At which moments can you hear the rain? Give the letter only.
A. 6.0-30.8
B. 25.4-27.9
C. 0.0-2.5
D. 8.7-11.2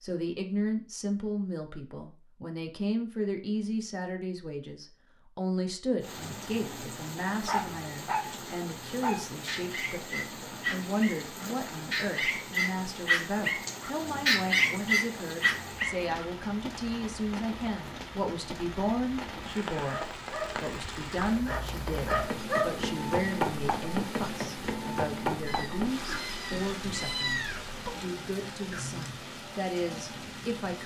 A.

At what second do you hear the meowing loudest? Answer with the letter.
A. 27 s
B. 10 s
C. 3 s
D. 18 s
A.